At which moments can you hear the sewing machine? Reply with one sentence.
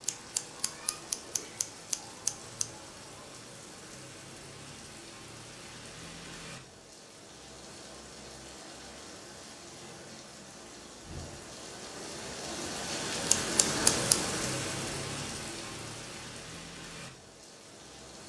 The sewing machine can't be heard in this clip.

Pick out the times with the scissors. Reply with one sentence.
The scissors can be heard from 0.0 to 2.6 s and from 13.2 to 14.2 s.